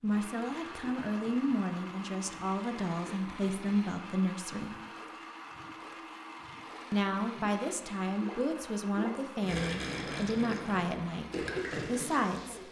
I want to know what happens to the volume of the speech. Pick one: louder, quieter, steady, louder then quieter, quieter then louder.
steady.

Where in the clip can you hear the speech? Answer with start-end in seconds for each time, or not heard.
0.0-4.8, 6.9-12.6.